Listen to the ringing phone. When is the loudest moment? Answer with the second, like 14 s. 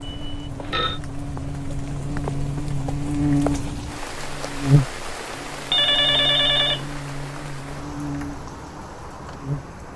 6 s.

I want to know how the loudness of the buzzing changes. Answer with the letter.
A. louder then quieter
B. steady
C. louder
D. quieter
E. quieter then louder
A.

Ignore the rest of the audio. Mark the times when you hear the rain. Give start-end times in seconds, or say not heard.
0.0-9.9.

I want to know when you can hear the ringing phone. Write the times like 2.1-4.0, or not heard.
0.0-1.0, 5.7-6.9.